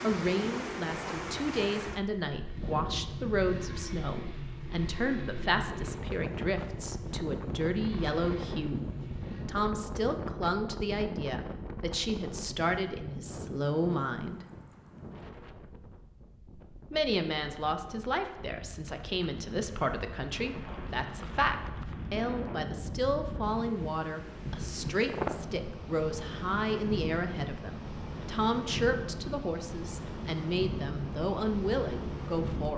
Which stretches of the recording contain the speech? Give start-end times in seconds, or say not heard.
0.0-8.8, 9.4-14.4, 16.9-32.7.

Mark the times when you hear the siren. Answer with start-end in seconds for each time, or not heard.
not heard.